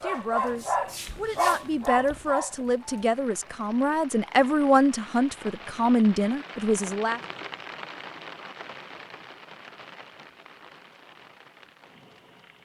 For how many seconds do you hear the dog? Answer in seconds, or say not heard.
3 s.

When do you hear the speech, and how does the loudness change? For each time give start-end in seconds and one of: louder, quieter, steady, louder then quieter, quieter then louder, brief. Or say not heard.
0.0-7.2 louder.